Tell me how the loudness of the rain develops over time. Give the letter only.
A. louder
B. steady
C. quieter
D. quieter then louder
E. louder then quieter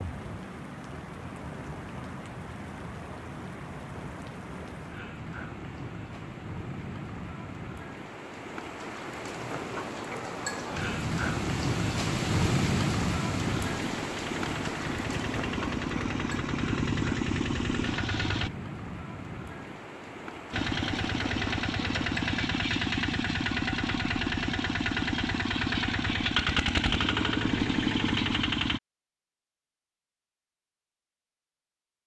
E.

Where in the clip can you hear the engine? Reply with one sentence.
You can hear the engine from 13.6 to 18.5 s and from 20.5 to 28.8 s.